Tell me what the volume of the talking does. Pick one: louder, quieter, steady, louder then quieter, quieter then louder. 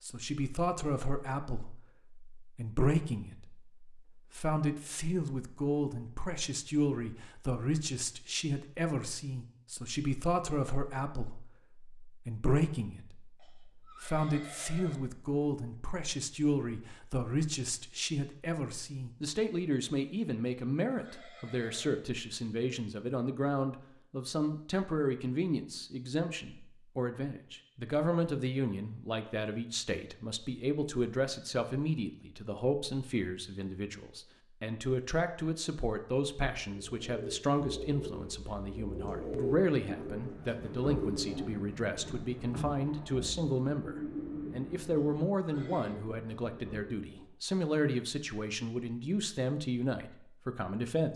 steady.